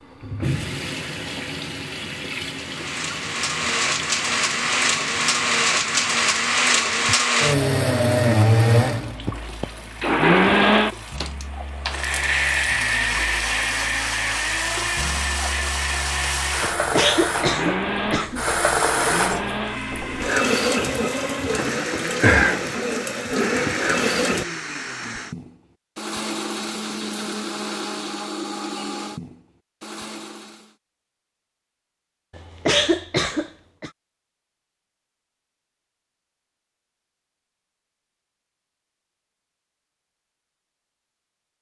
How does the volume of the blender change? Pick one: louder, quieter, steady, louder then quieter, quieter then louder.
quieter.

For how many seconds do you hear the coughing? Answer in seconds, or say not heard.
3 s.